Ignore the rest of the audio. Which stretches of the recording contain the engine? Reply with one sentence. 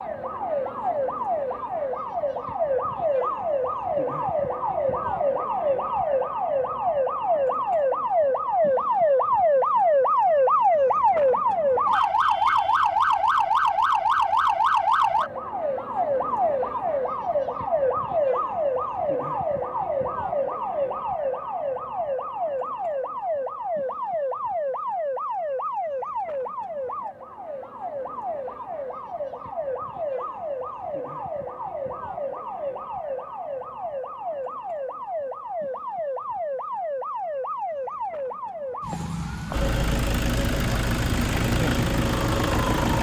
The engine can be heard from 39.5 to 42.9 s.